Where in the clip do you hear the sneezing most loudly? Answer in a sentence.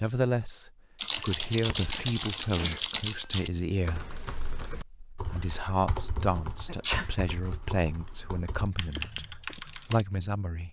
The loudest moment of the sneezing is at 7 seconds.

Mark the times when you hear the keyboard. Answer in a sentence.
You can hear the keyboard from 0.9 to 10.1 s.